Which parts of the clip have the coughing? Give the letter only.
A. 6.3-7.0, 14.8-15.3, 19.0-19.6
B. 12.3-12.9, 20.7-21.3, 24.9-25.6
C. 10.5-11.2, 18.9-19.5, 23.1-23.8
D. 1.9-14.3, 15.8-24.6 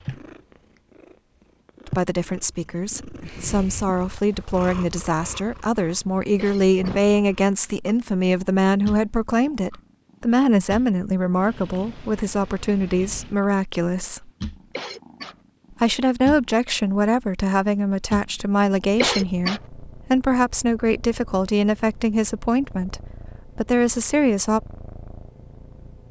A.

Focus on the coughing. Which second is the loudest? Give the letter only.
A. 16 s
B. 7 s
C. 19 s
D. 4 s
C.